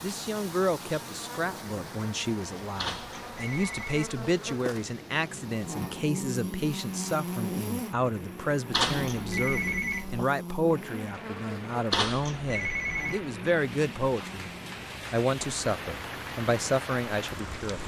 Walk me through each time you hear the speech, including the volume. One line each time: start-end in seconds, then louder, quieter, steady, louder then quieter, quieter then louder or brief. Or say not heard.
0.0-14.5 steady
15.1-17.8 brief.